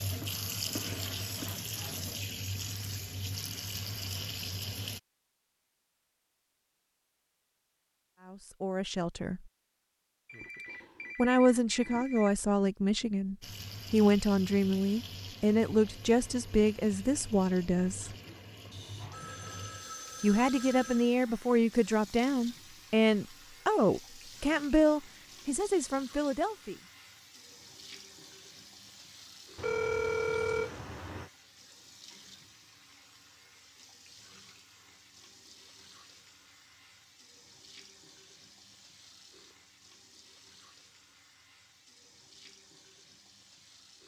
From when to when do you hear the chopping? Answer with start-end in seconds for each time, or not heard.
not heard.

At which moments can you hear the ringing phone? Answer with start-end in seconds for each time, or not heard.
10.2-12.3, 18.7-21.1, 29.6-31.3.